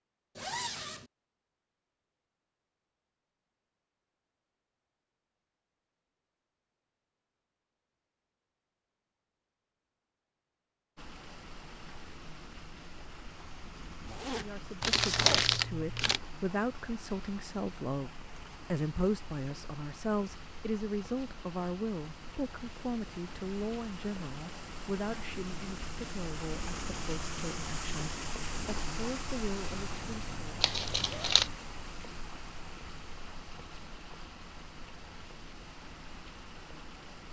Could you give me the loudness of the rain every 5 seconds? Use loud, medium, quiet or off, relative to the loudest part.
off, off, medium, medium, medium, loud, medium, medium.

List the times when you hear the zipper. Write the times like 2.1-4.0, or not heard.
0.3-1.1, 14.1-15.5, 29.8-31.6.